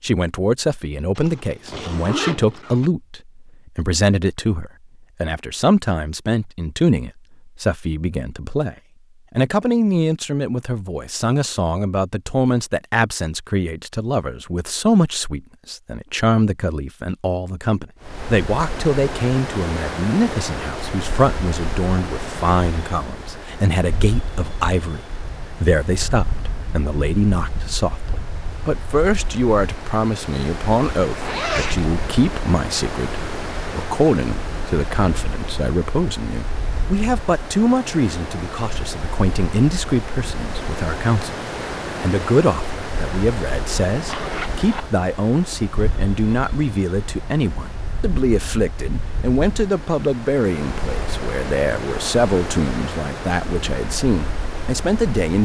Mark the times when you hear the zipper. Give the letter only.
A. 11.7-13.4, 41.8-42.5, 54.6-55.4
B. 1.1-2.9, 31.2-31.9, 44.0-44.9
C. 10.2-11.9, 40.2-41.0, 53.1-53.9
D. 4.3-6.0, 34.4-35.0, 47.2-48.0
B.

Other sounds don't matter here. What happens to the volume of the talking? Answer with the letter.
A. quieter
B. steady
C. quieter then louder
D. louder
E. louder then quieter
B.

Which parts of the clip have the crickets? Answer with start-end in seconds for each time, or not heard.
not heard.